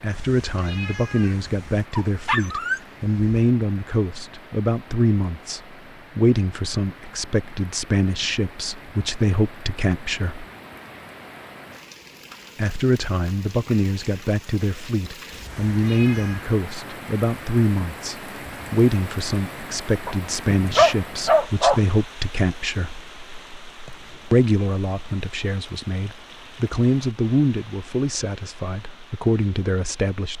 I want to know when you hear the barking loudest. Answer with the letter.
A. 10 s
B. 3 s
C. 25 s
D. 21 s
D.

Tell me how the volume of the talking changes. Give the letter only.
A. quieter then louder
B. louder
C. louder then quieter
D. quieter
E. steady
E.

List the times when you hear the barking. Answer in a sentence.
You can hear the barking from 1.9 to 3.5 s and from 20.1 to 21.9 s.